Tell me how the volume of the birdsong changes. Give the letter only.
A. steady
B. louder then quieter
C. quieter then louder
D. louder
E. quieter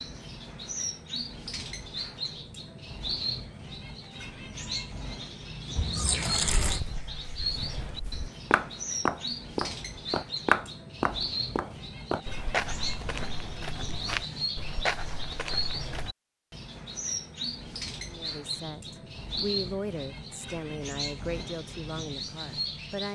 A.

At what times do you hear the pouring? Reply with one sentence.
You can hear the pouring from 5.8 to 6.8 s.